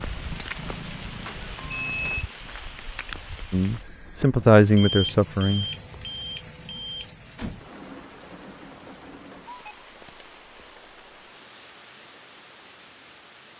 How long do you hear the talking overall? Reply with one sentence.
The talking can be heard for 2 seconds in total.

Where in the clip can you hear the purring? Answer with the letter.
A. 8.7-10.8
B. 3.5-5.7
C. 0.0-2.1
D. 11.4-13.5
C.